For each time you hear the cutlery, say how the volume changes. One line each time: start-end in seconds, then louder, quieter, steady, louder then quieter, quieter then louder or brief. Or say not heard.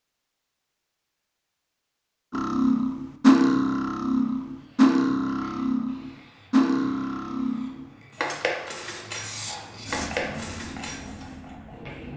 2.3-11.2 quieter.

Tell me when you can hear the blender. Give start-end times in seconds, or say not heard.
not heard.